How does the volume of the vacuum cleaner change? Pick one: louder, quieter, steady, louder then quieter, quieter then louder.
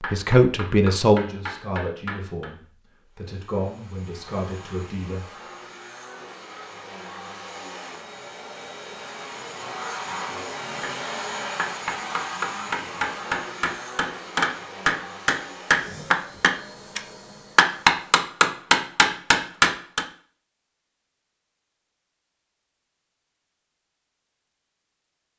louder then quieter.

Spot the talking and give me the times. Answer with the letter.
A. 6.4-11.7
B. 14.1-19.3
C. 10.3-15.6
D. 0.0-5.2
D.